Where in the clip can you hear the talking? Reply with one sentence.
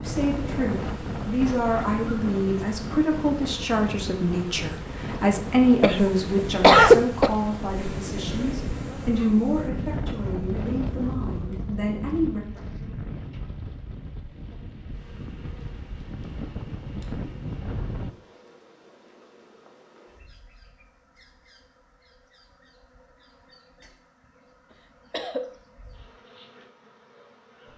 You can hear the talking from 0.0 to 12.4 s.